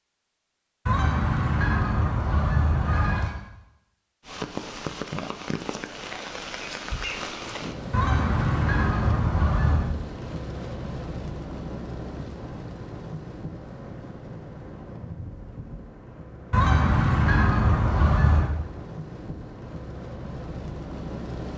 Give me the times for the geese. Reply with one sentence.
The geese can be heard from 0.8 to 3.4 s, from 7.9 to 9.9 s and from 16.5 to 18.5 s.